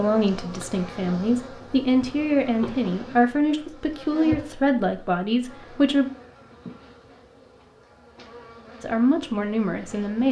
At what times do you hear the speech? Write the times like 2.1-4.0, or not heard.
0.0-6.0, 8.8-10.2.